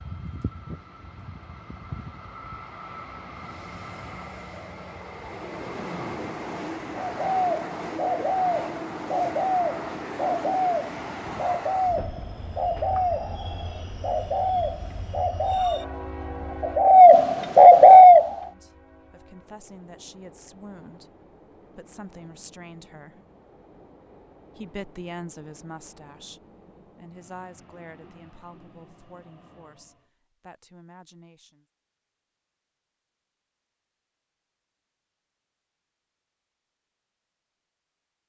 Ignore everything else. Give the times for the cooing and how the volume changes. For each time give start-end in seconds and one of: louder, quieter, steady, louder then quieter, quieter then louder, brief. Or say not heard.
6.9-18.4 louder.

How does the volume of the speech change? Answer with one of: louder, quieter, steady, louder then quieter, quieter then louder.
louder then quieter.